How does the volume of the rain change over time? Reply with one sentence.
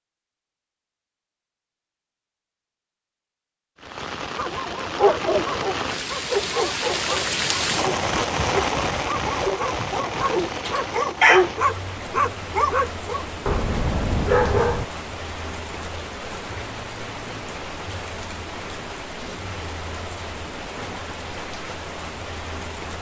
The volume of the rain goes down.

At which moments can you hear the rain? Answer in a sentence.
The rain can be heard from 3.8 to 22.9 s.